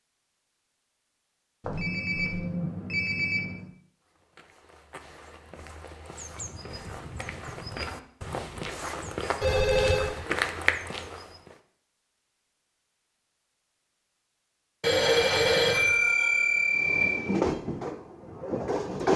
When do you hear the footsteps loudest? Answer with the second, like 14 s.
11 s.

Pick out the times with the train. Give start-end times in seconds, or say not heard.
16.8-19.1.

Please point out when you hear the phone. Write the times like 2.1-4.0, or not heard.
1.6-3.7, 9.4-10.1, 14.8-17.2.